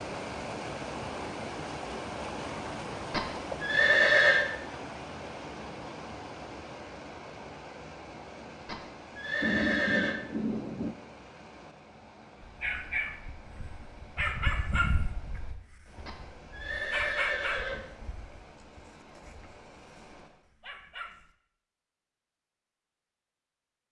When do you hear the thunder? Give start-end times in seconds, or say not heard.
9.4-10.9.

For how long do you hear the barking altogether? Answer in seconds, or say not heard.
9 s.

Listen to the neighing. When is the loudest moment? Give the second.
4 s.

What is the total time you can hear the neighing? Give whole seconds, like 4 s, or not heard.
5 s.